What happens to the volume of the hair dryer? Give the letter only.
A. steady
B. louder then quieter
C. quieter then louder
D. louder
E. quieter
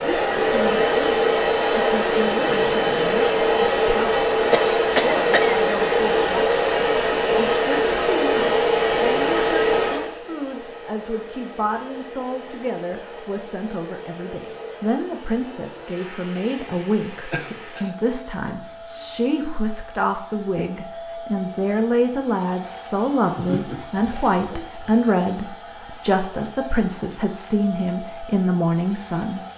E.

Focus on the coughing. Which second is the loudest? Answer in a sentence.
The loudest moment of the coughing is at 5 seconds.